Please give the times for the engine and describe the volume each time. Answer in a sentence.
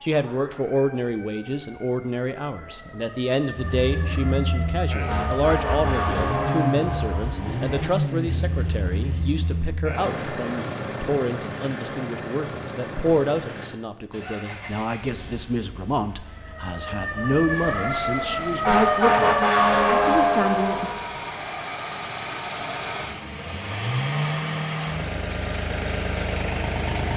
You can hear the engine from 3.5 to 27.1 s, getting quieter then louder.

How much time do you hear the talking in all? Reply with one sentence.
The talking can be heard for 21 seconds in total.